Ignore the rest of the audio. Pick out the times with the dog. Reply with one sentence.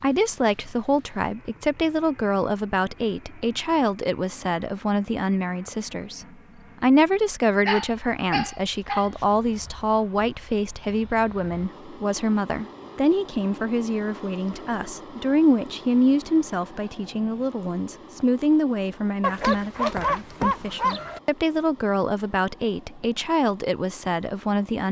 You can hear the dog from 7.7 to 9.2 s and from 19.2 to 21.2 s.